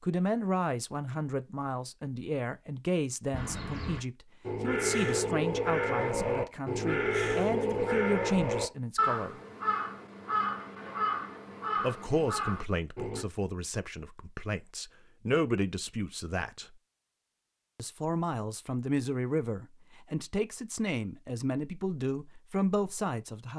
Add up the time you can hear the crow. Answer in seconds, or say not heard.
10 s.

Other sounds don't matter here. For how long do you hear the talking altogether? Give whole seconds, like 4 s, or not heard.
20 s.